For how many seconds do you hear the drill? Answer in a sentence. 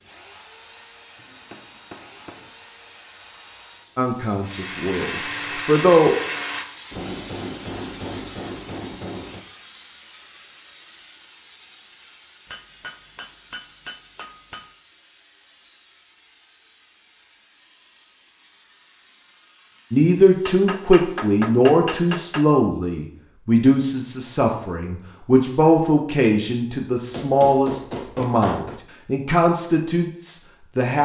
The drill can be heard for 7 seconds in total.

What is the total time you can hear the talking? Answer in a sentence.
You can hear the talking for 13 seconds altogether.